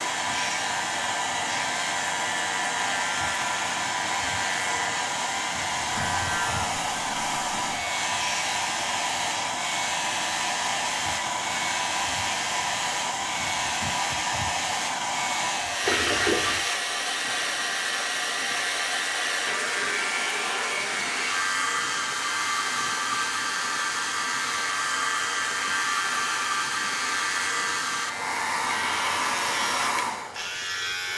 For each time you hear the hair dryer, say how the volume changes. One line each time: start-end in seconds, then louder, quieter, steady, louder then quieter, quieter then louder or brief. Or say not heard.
0.0-31.1 steady.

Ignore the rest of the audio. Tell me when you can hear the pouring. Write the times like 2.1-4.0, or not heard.
15.8-16.6.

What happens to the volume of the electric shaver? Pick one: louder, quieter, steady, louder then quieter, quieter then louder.
steady.